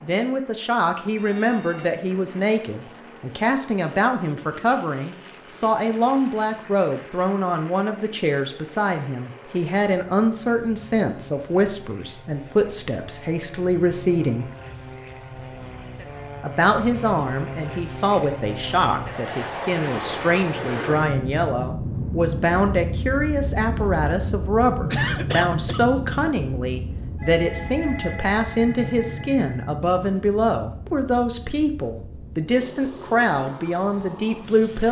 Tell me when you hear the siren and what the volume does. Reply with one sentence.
The siren can't be heard in this clip.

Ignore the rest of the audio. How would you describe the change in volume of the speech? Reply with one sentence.
The loudness of the speech stays about the same.